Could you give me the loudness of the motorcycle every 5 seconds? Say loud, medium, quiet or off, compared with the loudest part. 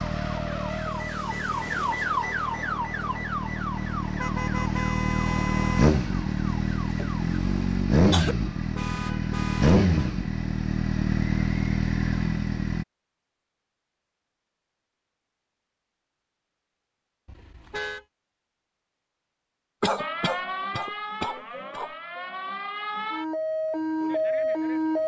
medium, loud, loud, off, off.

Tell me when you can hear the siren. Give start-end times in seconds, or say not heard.
0.0-7.8, 19.9-25.0.